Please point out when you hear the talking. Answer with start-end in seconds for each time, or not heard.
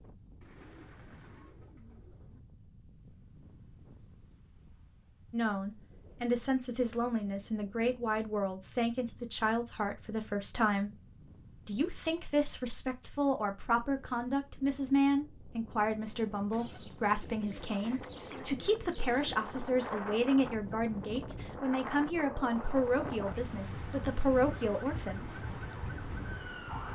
5.3-10.9, 11.7-25.6.